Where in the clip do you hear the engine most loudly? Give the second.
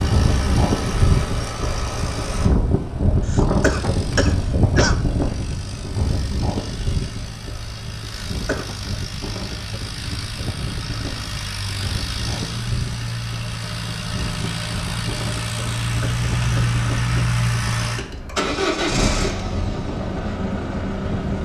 17 s.